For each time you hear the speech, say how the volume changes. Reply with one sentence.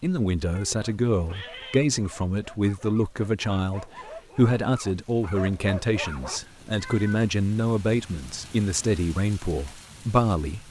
The speech can be heard from 0.0 to 10.6 s, at a steady volume.